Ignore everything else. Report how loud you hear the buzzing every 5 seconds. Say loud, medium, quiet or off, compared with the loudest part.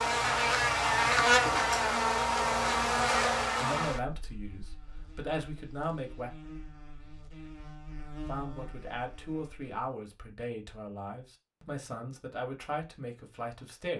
loud, quiet, off.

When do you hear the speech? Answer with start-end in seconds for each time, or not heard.
3.6-6.3, 8.2-13.9.